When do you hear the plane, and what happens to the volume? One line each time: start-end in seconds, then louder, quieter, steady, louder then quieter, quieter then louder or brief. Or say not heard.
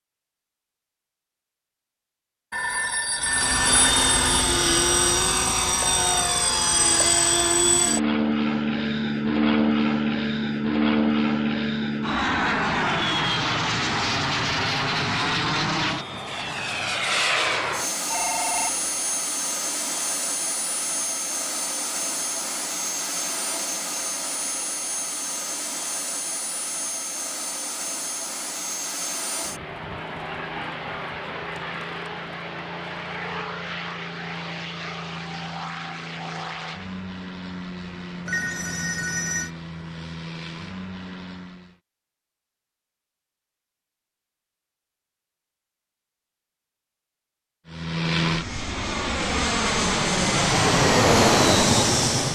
3.2-41.8 quieter
47.6-52.3 louder.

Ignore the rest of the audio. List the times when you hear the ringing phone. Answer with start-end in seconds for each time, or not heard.
2.5-4.5, 18.1-18.9, 38.2-39.5.